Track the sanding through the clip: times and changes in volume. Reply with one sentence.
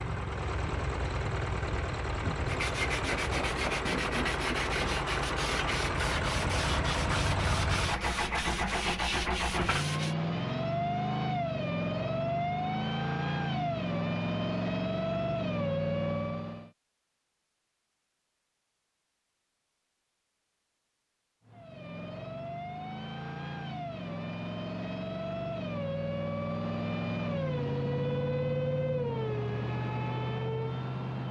The sanding can be heard from 2.5 to 10.2 s, at a steady volume.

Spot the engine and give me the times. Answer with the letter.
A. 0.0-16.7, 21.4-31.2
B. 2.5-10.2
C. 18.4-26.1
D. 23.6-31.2
A.